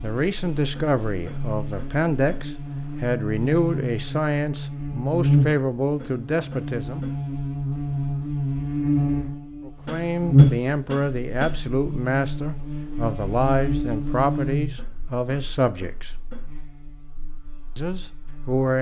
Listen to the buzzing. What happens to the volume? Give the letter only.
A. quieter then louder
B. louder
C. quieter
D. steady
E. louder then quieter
E.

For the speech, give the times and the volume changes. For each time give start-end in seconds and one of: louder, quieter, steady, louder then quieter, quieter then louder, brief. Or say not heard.
0.0-7.0 steady
9.7-16.2 steady
17.8-18.7 brief.